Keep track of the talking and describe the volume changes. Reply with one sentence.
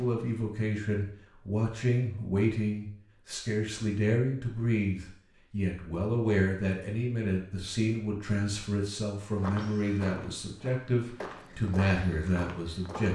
The loudness of the talking stays about the same.